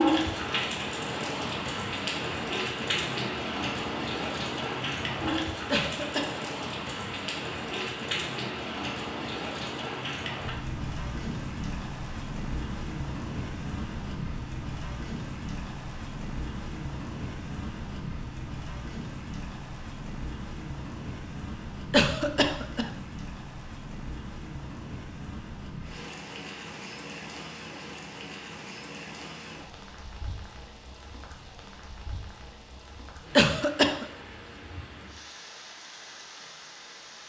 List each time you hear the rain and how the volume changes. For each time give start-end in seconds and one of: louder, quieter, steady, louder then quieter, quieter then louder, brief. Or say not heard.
0.0-37.2 quieter.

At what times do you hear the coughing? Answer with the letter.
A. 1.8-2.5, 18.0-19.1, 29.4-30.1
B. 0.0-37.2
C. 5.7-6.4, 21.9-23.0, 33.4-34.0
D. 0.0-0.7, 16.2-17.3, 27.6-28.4
C.